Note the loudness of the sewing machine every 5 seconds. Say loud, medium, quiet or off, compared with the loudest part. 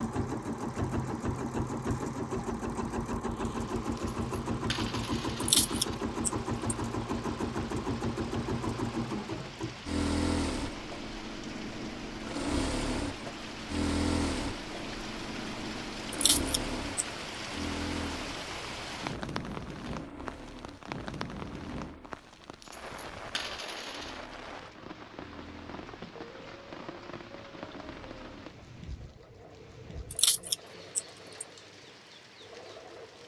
loud, loud, loud, medium, quiet, quiet, quiet.